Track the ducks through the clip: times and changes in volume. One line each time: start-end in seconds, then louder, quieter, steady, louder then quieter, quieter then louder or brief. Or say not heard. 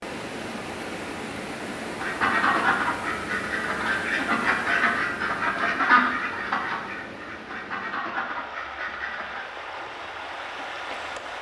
1.9-9.4 quieter.